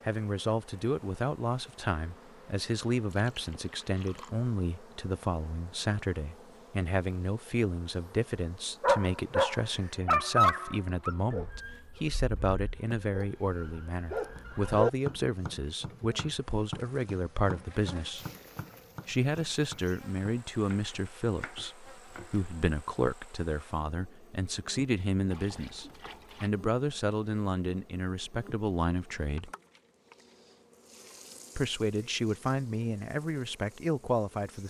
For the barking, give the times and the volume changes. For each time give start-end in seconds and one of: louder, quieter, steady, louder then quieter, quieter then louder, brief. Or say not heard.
8.8-14.9 quieter then louder.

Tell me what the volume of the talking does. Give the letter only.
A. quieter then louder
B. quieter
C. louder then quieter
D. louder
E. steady
E.